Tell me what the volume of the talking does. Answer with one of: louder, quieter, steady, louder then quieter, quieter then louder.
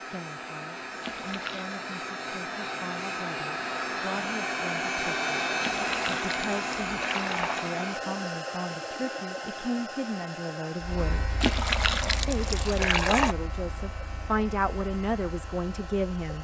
louder.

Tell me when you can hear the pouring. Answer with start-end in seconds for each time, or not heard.
1.0-1.8, 5.6-7.6, 11.4-13.3.